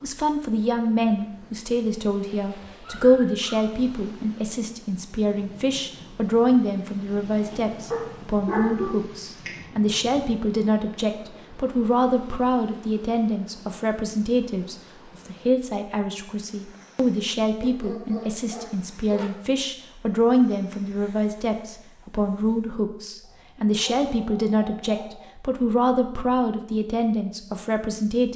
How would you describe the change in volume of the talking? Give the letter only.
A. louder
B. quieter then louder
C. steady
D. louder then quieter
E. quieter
C.